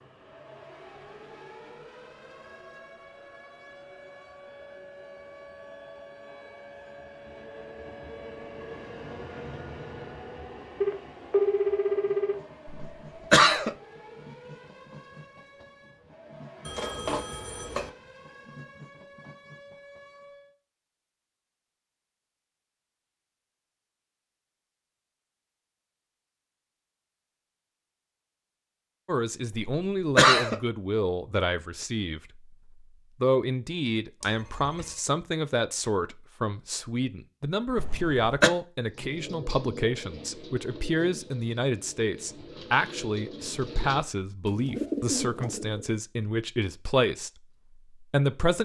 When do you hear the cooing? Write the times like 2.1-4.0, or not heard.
38.9-46.0.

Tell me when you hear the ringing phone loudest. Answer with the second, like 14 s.
12 s.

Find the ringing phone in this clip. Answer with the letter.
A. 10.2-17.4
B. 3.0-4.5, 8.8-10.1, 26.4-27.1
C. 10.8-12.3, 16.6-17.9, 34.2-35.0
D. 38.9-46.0
C.